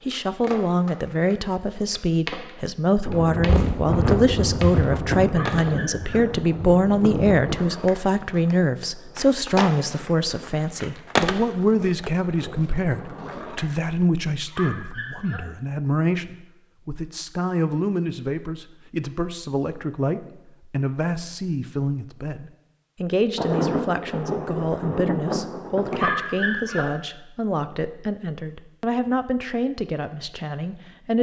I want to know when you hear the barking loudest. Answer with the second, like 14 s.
26 s.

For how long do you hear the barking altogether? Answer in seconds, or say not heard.
3 s.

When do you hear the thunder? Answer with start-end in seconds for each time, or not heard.
3.0-7.6, 23.4-26.1.